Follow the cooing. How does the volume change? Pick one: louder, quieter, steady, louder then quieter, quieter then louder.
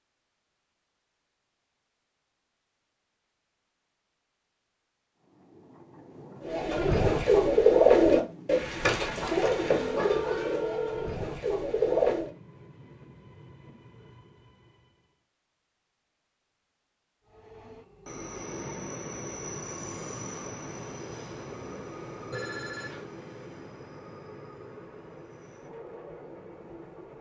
quieter.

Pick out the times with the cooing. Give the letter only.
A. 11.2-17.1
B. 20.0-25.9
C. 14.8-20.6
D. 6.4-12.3
D.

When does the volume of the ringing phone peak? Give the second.
11 s.